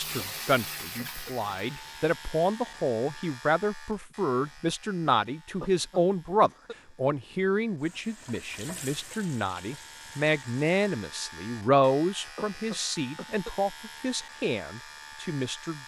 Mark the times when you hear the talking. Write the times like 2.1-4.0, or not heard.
0.0-15.8.